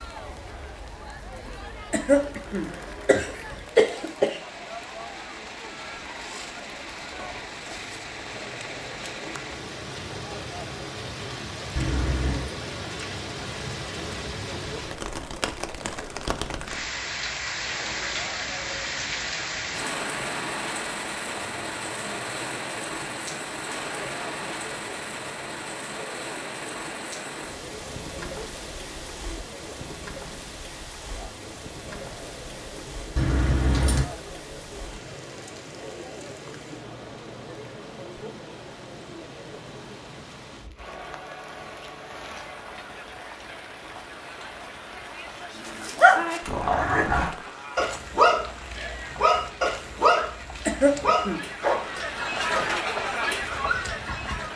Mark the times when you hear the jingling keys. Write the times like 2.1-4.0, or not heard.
11.8-12.5, 33.1-34.0.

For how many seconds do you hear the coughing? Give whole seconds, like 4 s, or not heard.
3 s.